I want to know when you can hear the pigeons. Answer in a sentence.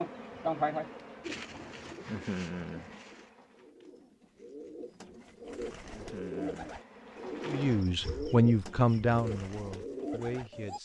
You can hear the pigeons from 1.2 to 10.8 s.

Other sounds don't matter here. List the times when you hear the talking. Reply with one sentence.
You can hear the talking from 7.5 to 10.8 s.